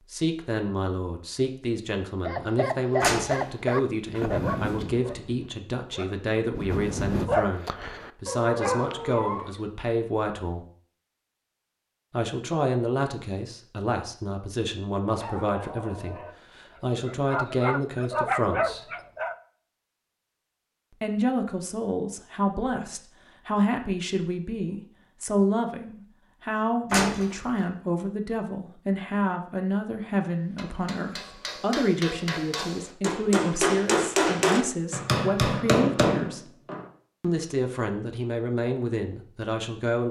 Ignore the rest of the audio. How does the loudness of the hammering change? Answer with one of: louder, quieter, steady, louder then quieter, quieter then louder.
louder.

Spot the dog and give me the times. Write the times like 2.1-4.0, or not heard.
2.2-9.6, 15.1-19.4.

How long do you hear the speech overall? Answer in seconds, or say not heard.
36 s.